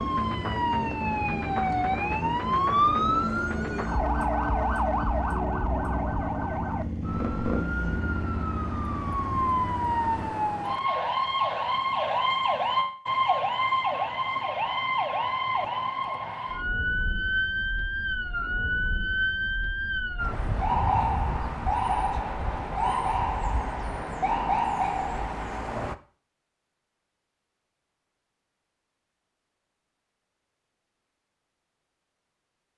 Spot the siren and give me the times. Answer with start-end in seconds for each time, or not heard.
0.0-25.9.